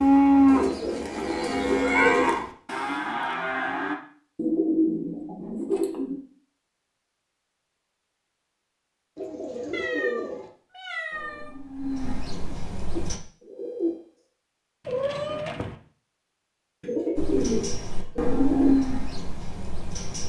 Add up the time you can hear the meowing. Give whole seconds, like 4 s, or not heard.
3 s.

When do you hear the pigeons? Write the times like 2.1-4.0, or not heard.
0.5-2.4, 4.3-6.2, 9.2-10.5, 12.3-14.0, 16.8-18.8.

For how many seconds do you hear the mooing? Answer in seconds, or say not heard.
9 s.